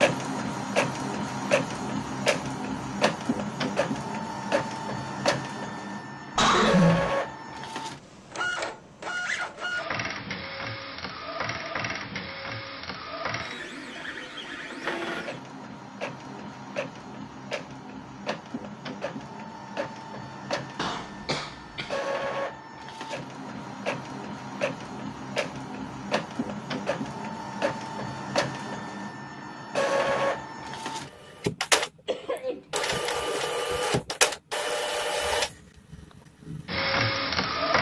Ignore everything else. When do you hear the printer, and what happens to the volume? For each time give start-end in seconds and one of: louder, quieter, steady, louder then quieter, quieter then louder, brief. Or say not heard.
0.0-37.7 quieter then louder.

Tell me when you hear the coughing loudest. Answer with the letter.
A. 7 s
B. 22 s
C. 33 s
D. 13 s
A.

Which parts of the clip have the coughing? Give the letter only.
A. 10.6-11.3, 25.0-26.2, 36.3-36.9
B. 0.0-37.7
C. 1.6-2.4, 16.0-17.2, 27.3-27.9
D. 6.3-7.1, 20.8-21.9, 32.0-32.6
D.